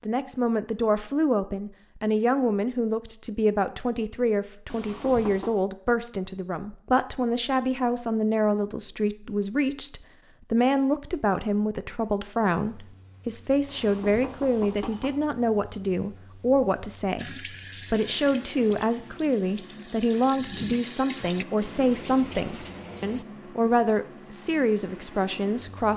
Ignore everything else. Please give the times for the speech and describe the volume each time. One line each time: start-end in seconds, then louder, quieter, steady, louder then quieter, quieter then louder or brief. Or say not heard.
0.0-25.9 steady.